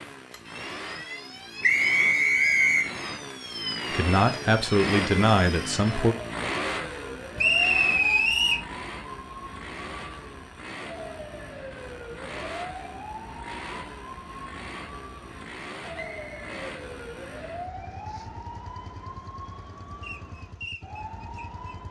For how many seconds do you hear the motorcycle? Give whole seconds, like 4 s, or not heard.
22 s.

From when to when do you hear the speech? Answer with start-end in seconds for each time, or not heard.
3.9-6.2.